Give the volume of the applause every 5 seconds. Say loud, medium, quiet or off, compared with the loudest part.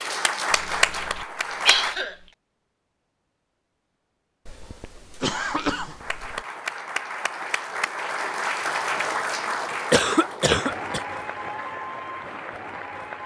loud, loud, medium.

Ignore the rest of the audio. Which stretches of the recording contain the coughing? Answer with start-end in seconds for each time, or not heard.
0.5-2.1, 4.5-6.5, 9.9-11.0.